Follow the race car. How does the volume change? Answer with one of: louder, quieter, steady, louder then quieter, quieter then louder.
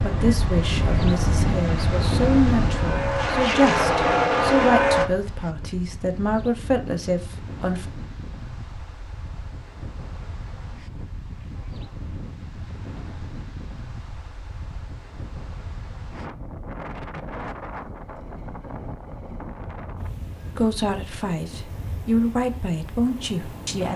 louder.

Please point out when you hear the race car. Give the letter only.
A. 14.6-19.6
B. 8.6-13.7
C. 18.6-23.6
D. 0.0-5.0
D.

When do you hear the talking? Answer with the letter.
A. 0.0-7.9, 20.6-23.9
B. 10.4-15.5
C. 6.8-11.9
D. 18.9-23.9
A.